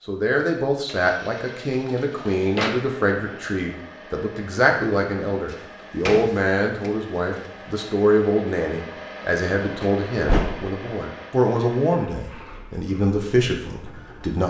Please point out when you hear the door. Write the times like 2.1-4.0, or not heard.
1.7-2.7, 5.5-7.5, 9.8-10.8.